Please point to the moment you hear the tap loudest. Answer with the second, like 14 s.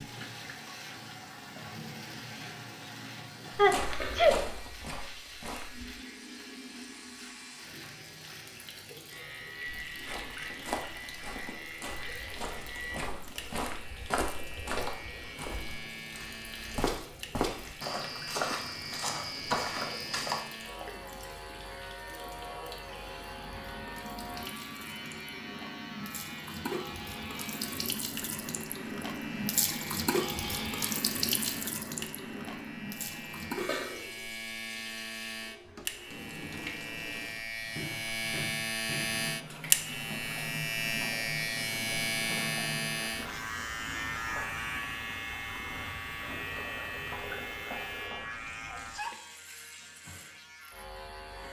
30 s.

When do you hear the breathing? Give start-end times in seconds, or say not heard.
not heard.